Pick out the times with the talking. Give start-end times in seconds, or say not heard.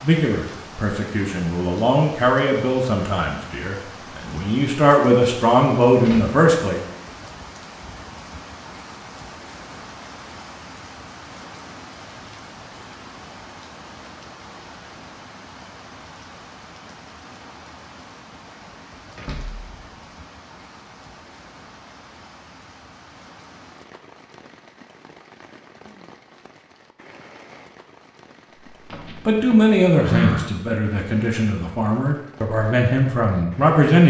0.0-6.8, 29.2-34.0.